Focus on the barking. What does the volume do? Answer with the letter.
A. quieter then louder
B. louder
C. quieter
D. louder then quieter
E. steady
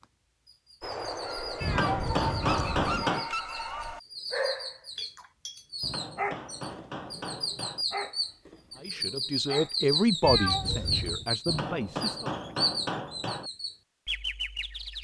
C.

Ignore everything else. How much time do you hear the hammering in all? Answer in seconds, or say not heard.
6 s.